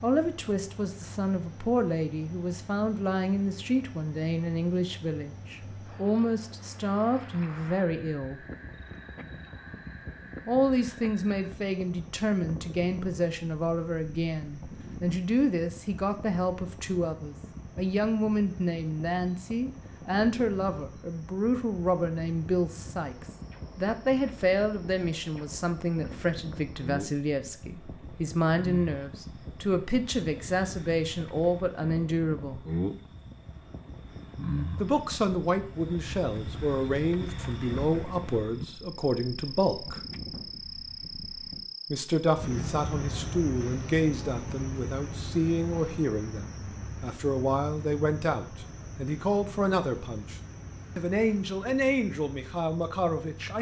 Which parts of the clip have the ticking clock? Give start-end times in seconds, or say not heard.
not heard.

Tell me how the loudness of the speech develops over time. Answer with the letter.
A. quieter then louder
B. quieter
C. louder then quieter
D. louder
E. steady
E.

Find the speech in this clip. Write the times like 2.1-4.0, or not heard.
0.0-8.4, 10.4-32.6, 34.8-40.0, 41.9-53.5.